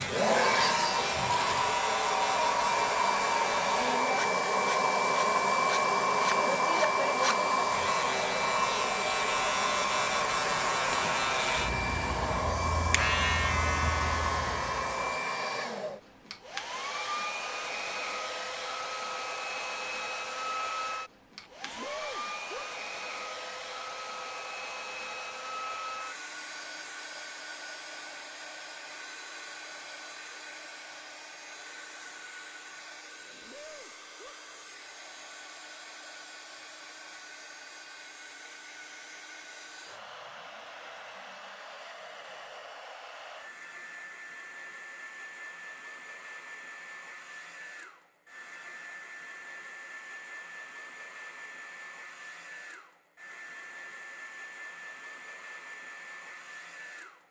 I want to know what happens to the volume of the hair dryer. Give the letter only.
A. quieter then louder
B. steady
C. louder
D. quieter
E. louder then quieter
D.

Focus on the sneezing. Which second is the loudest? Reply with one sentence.
The volume of the sneezing peaks at 22 seconds.